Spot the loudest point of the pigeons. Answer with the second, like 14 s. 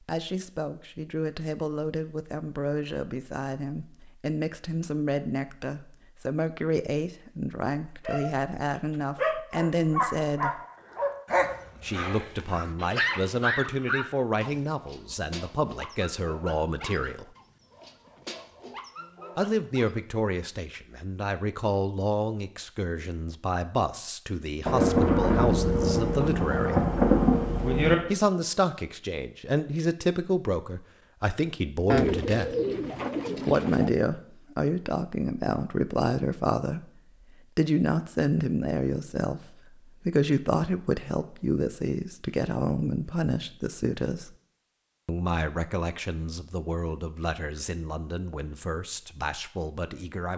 32 s.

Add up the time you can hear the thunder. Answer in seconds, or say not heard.
3 s.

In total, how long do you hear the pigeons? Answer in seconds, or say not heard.
2 s.